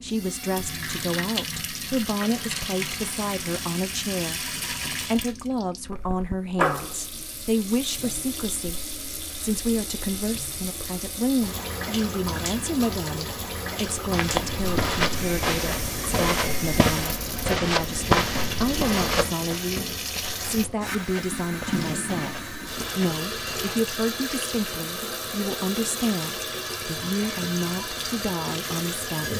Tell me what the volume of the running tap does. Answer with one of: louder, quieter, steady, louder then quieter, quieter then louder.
steady.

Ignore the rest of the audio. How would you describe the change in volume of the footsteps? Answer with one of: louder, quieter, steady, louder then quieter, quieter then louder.
quieter.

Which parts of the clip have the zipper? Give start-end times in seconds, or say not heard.
not heard.